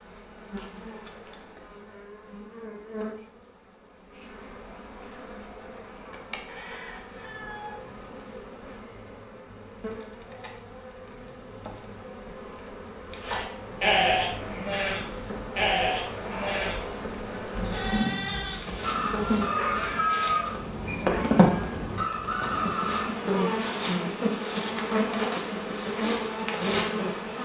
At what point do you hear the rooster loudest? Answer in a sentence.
The volume of the rooster peaks at 20 seconds.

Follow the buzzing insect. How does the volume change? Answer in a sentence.
The loudness of the buzzing insect goes up.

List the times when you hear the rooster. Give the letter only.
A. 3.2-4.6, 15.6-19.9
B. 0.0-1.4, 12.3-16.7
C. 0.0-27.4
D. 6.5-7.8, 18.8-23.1
D.